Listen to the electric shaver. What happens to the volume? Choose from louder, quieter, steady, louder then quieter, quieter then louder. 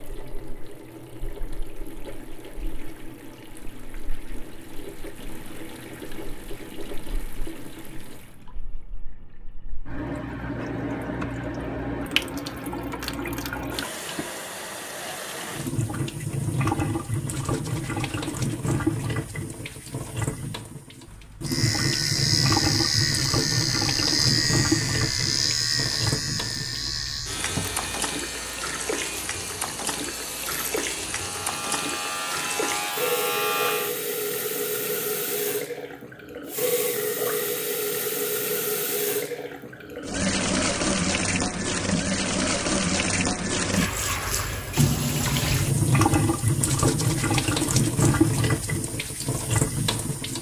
quieter then louder.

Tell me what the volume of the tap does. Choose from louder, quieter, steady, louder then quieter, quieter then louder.
louder.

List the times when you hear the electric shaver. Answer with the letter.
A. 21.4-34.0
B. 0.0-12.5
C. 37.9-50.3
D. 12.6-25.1
A.